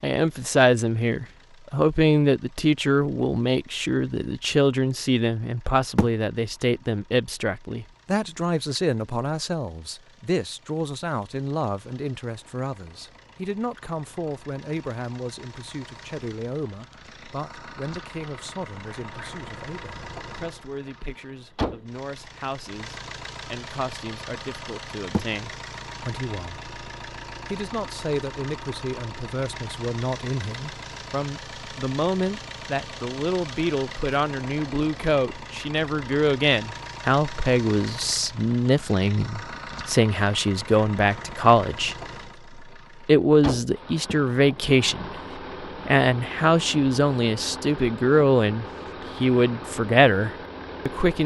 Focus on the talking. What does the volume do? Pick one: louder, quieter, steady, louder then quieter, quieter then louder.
quieter then louder.